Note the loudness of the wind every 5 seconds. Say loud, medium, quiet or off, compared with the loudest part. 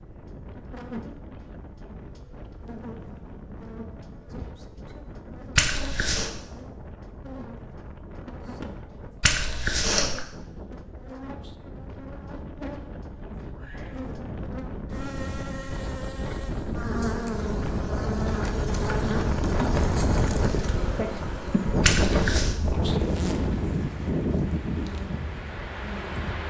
quiet, quiet, quiet, loud, loud, medium.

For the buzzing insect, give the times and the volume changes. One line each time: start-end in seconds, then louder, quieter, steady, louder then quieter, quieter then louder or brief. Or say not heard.
0.5-26.4 louder.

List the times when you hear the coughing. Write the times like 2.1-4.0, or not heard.
5.5-6.3, 9.2-10.2, 21.8-22.6.